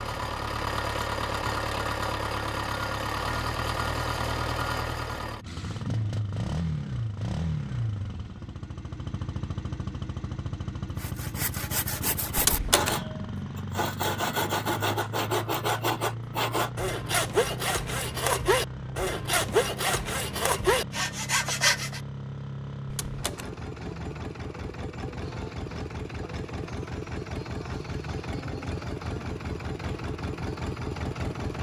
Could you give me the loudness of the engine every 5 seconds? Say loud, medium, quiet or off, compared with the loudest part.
loud, loud, medium, medium, medium, medium, loud.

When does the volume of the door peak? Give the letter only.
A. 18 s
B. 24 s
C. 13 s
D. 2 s
C.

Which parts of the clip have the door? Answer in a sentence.
The door can be heard from 12.3 to 13.0 s and from 22.9 to 23.5 s.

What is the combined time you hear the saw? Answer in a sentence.
The saw can be heard for 11 seconds in total.